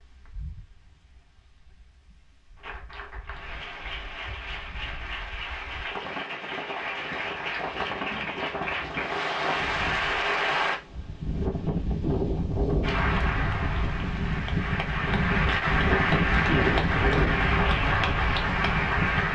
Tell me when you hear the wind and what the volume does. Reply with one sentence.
The wind can be heard from 0.0 to 19.3 s, getting louder.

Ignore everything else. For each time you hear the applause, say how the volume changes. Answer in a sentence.
The applause can be heard from 2.5 to 10.8 s, getting louder; and from 12.8 to 19.3 s, getting louder.